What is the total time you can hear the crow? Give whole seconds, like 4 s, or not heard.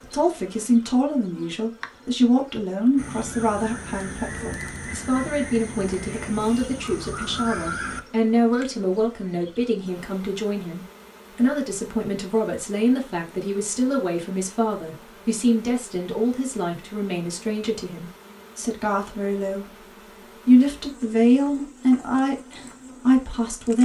5 s.